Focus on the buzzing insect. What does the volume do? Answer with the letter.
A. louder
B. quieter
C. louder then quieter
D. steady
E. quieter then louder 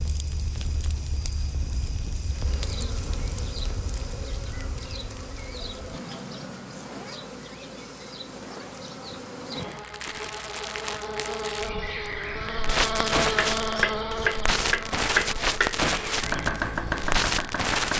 A.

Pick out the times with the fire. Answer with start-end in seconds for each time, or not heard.
0.0-17.9.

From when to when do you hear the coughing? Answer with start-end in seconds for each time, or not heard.
not heard.